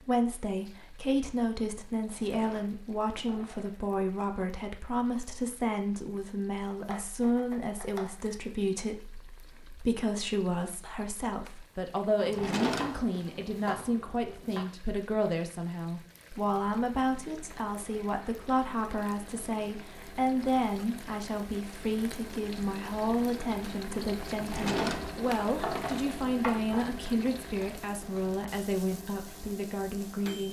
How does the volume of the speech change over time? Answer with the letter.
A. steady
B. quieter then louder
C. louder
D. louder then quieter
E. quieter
A.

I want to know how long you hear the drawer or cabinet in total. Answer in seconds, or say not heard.
5 s.